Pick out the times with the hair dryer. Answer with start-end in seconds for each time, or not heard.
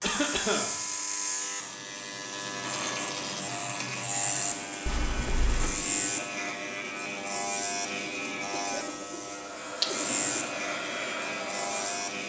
9.3-12.1.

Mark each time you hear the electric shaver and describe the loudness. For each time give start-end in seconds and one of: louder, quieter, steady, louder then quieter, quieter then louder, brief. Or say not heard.
0.0-12.2 steady.